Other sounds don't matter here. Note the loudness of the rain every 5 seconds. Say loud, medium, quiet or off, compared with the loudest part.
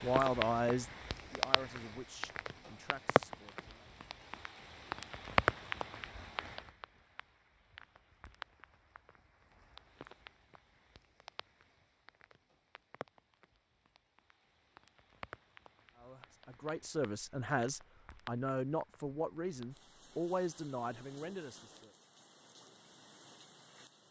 loud, loud, quiet, quiet, quiet.